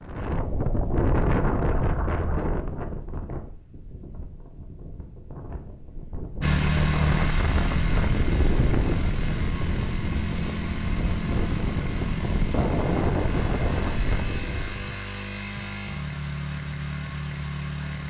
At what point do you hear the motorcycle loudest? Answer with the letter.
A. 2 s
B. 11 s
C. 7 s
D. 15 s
C.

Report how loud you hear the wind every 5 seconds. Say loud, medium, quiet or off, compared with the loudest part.
loud, loud, loud, off.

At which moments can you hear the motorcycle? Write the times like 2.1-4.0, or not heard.
6.4-18.0.